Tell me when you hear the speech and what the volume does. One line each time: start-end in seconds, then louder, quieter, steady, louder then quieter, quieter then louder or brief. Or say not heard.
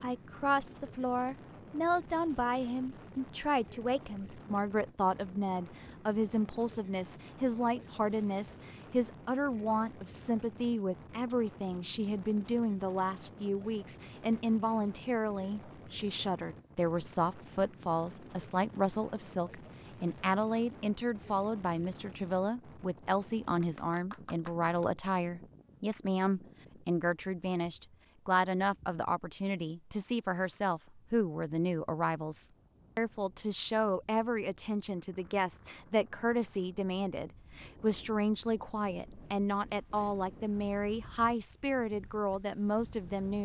0.0-43.4 steady.